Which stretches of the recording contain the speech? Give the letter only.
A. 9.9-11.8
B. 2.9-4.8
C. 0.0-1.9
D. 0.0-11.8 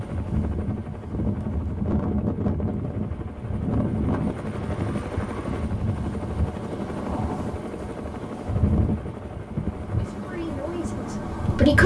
A.